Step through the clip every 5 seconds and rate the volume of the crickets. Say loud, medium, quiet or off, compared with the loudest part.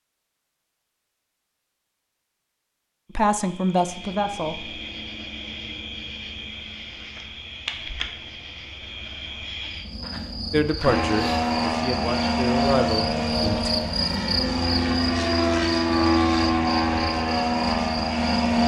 medium, medium, loud, loud.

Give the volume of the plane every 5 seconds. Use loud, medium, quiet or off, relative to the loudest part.
off, off, loud, loud.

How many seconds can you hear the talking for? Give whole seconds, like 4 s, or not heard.
5 s.